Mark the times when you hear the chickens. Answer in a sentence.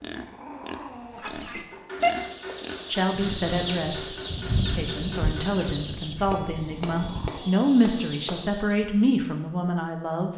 You can hear the chickens from 1.1 to 8.8 s.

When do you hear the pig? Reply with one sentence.
The pig can be heard from 0.0 to 3.0 s.